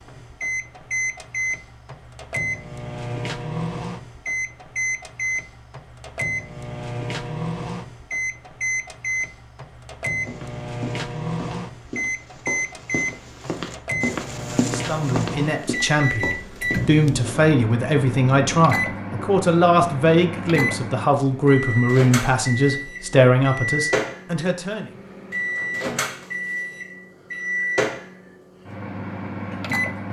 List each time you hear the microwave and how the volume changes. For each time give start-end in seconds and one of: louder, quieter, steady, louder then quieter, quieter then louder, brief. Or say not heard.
0.0-30.0 steady.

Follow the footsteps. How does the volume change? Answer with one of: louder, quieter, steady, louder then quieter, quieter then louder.
louder then quieter.